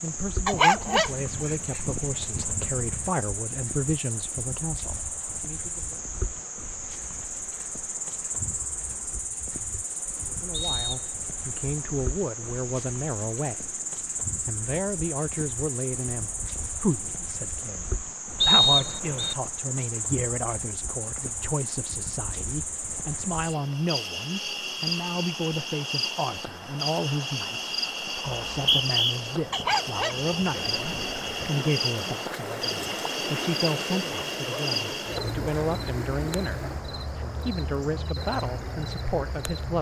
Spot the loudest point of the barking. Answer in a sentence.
The loudest moment of the barking is at 1 second.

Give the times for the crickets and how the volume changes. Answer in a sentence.
The crickets can be heard from 0.0 to 39.7 s, at a steady volume.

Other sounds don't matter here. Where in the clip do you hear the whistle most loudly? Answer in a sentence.
The volume of the whistle peaks at 19 seconds.